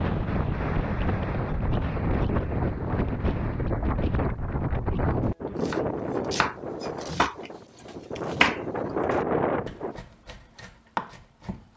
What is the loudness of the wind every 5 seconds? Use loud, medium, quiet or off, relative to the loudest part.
loud, loud, off.